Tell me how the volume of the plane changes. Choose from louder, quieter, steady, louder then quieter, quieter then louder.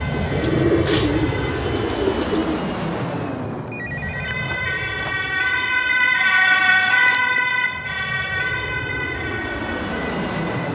quieter then louder.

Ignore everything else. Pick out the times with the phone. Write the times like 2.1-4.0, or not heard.
3.6-5.2.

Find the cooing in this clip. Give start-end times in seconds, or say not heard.
0.1-2.6, 6.5-7.4.